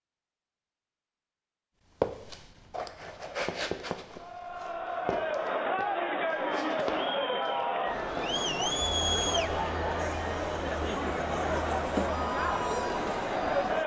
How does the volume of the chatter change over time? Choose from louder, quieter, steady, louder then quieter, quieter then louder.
steady.